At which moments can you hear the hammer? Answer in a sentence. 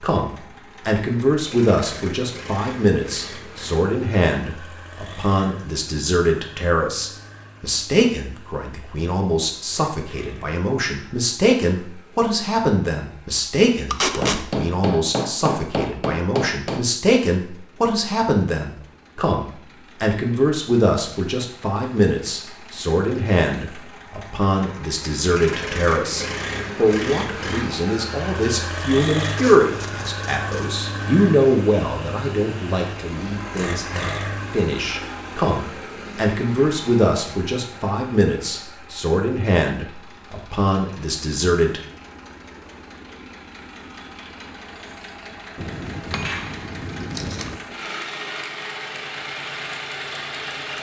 You can hear the hammer from 14.2 to 16.9 s and from 45.5 to 47.6 s.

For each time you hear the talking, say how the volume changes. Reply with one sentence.
The talking can be heard from 0.0 to 41.8 s, at a steady volume.